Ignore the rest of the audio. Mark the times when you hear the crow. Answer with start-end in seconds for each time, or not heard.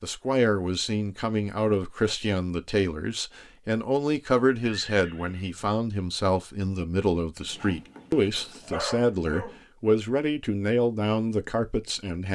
not heard.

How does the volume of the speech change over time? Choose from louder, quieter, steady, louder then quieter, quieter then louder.
steady.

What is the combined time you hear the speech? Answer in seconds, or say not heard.
12 s.